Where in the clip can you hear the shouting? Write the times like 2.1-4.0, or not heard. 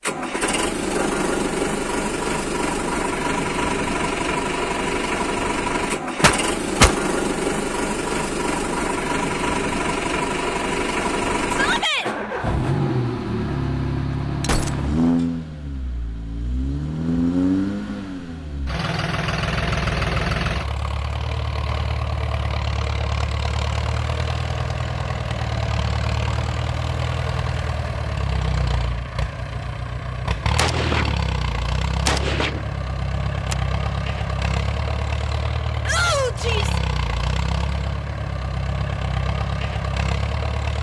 11.5-12.1, 35.9-36.8.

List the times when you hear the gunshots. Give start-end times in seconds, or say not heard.
6.2-7.0, 14.4-14.9, 30.6-32.6.